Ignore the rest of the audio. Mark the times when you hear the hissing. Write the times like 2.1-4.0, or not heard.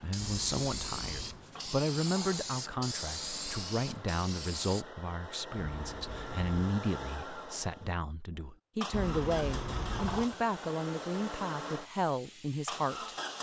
0.0-4.8, 10.2-13.3.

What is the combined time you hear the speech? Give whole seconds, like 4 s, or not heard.
13 s.